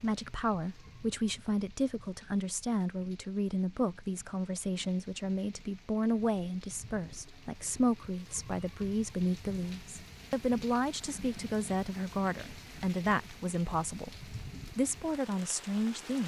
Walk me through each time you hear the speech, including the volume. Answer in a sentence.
You can hear the speech from 0.0 to 16.2 s, at a steady volume.